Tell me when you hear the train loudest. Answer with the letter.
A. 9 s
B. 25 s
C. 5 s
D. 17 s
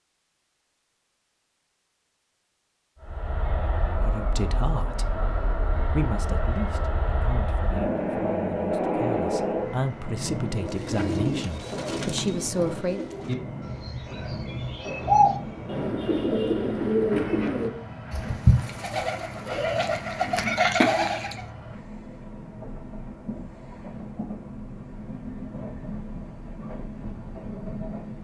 A.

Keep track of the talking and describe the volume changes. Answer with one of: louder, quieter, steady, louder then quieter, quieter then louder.
quieter then louder.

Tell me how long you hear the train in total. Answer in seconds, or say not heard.
25 s.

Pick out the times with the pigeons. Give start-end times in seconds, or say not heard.
10.4-21.4.